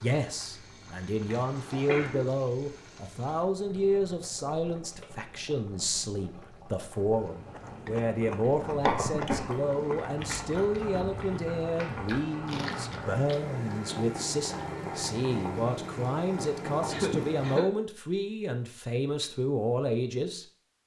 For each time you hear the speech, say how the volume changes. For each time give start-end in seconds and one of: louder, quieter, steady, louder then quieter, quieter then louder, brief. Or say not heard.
0.0-20.4 steady.